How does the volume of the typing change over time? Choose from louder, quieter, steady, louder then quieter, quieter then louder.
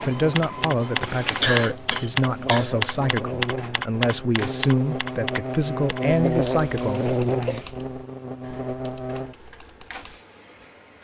quieter.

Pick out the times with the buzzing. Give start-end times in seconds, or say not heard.
0.1-9.3.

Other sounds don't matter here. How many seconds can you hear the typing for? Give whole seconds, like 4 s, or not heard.
10 s.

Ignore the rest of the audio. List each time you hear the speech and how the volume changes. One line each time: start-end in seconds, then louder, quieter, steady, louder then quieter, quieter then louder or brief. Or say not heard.
0.0-7.2 steady.